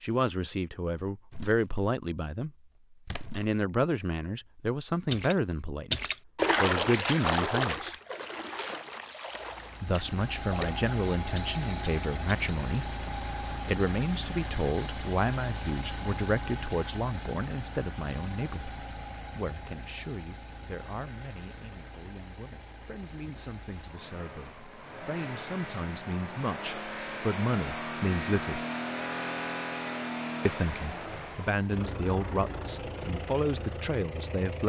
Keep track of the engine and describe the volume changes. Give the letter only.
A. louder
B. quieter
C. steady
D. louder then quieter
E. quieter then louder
E.